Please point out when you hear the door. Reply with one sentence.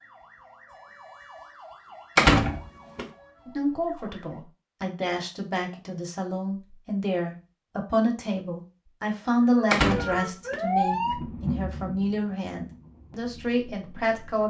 The door can be heard from 2.1 to 3.0 s and from 9.7 to 10.6 s.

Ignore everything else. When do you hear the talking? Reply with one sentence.
You can hear the talking from 3.5 to 14.4 s.